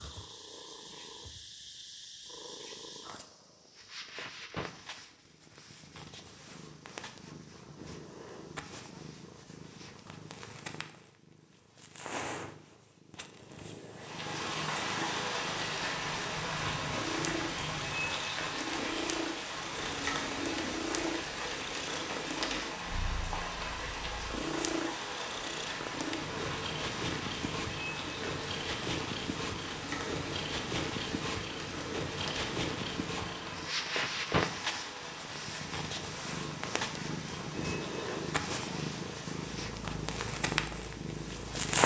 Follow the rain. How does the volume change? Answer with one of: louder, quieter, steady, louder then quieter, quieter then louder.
quieter.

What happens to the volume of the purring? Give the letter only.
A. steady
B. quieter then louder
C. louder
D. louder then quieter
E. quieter
C.